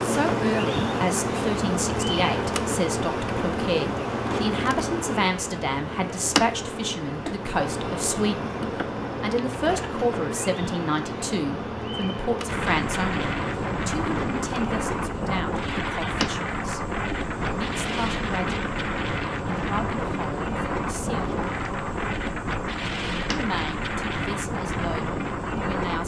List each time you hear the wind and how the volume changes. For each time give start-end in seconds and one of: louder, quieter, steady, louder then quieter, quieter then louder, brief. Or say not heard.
12.4-26.0 steady.